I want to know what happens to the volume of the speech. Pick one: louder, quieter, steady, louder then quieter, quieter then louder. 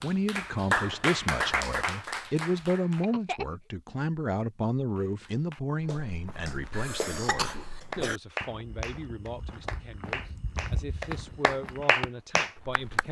quieter.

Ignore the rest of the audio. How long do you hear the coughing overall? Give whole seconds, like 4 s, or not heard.
2 s.